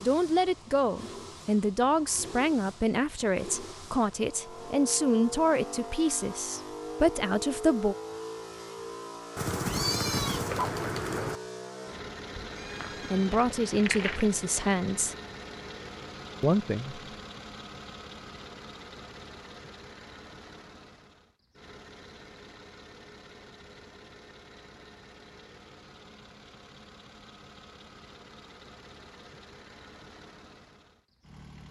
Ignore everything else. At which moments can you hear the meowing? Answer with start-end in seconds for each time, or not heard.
9.3-11.4.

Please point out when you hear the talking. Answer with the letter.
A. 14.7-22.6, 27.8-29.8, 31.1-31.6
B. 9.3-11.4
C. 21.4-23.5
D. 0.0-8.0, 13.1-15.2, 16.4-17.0
D.